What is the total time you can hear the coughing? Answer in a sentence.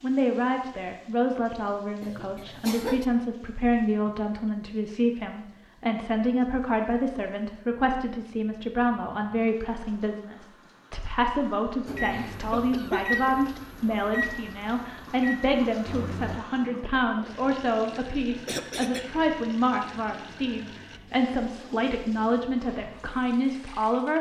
The coughing can be heard for 3 seconds in total.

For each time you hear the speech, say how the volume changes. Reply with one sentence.
You can hear the speech from 0.0 to 24.1 s, at a steady volume.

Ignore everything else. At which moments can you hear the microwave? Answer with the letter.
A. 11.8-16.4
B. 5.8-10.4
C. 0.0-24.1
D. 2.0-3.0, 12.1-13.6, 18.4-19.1
A.